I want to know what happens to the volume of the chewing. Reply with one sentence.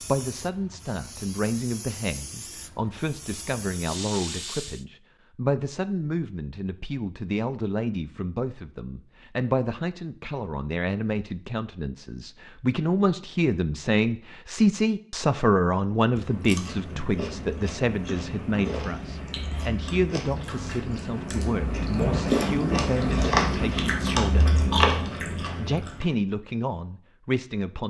The loudness of the chewing goes up.